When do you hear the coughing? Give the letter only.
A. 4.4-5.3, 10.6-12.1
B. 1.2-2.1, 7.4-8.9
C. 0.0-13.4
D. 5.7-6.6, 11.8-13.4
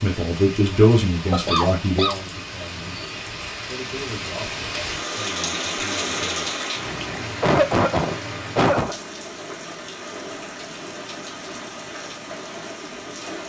B.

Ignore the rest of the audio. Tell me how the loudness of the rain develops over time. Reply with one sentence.
The volume of the rain goes up, then down.